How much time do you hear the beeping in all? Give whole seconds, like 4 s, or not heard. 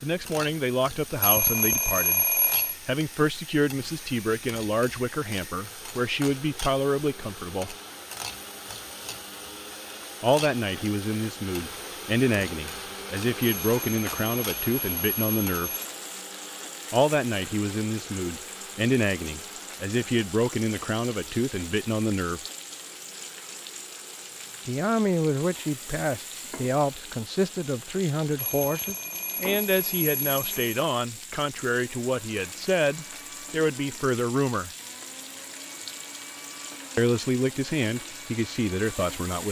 6 s.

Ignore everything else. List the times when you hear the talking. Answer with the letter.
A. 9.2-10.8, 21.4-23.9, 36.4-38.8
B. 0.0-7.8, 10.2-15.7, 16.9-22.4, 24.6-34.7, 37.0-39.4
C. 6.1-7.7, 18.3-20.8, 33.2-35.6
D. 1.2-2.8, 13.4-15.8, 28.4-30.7
B.